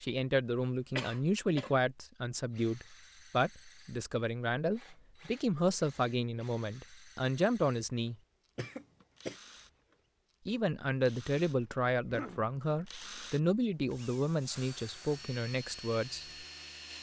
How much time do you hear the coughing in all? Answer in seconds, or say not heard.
2 s.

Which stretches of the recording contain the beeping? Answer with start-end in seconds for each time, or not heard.
not heard.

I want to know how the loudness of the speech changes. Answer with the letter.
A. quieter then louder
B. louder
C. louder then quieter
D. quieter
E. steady
E.